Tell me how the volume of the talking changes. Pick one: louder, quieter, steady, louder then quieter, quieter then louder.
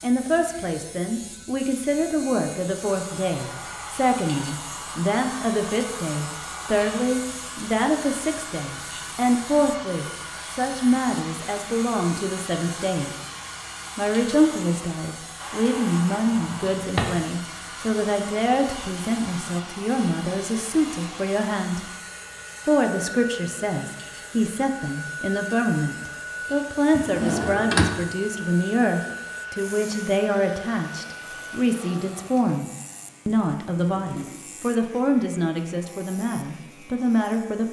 steady.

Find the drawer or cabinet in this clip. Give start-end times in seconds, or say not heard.
16.4-17.2, 26.9-27.9.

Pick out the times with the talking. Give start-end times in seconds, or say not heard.
0.0-13.1, 13.9-21.9, 22.6-37.6.